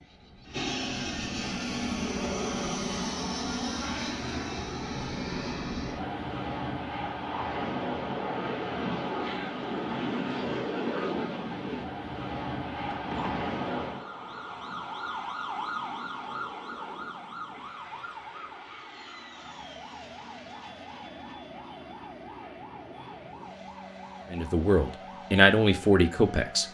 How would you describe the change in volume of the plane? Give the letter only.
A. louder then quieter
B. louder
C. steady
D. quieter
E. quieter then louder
D.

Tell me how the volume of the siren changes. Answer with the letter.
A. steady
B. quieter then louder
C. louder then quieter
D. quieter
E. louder
D.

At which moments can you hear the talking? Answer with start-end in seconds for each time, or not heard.
24.3-26.6.